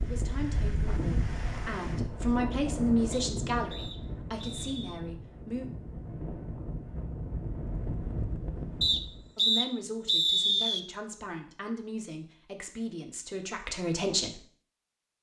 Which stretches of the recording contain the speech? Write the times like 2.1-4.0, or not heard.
0.0-5.7, 9.3-14.4.